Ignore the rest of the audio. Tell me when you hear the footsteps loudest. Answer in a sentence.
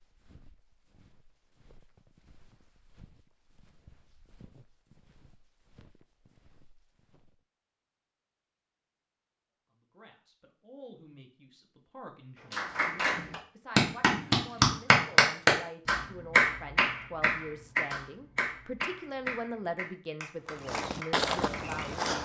The volume of the footsteps peaks at 21 seconds.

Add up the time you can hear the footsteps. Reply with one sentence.
You can hear the footsteps for 9 seconds altogether.